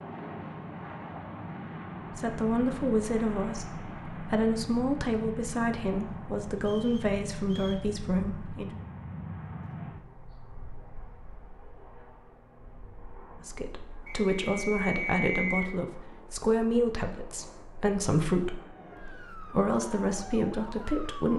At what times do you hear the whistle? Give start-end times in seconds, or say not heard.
6.6-7.8, 14.1-15.8.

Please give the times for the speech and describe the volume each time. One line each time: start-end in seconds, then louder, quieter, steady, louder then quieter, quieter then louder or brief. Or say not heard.
2.1-8.7 steady
13.4-21.3 steady.